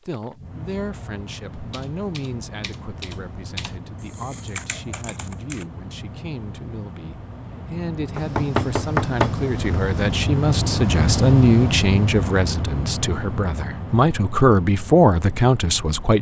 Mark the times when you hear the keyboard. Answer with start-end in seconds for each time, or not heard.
1.5-5.7.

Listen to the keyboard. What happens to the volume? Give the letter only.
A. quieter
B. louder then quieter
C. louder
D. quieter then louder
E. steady
C.